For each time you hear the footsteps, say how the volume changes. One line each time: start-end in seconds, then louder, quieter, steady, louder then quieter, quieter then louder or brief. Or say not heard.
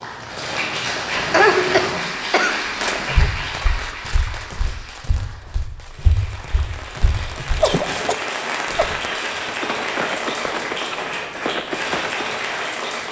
3.0-9.0 louder.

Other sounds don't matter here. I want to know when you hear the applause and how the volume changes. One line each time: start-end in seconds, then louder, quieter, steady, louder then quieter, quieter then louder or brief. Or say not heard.
0.0-13.0 quieter then louder.